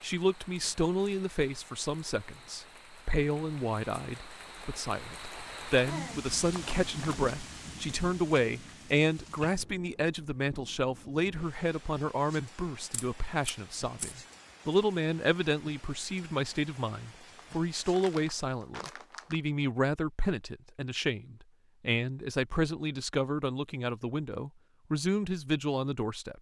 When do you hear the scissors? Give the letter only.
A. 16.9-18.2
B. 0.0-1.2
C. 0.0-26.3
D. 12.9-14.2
D.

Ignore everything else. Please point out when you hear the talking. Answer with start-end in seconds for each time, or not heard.
0.0-26.3.